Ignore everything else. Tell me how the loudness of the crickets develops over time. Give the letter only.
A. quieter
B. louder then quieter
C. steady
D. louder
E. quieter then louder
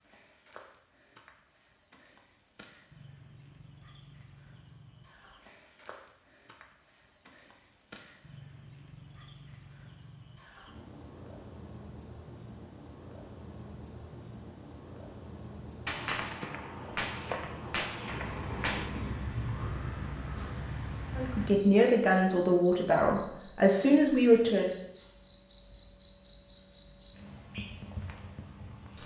D.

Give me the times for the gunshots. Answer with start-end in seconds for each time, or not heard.
15.8-18.9.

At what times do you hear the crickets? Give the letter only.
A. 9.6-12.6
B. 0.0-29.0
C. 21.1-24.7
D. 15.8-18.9
B.